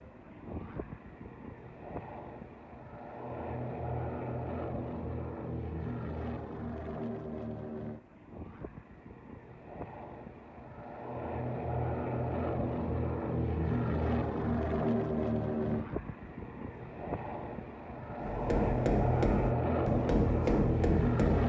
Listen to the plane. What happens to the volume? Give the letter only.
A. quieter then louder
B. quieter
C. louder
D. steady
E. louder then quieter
C.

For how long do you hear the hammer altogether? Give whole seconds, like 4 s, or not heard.
3 s.